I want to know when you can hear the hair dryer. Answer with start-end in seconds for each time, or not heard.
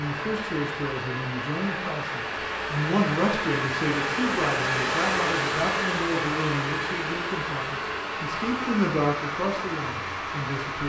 0.0-10.8.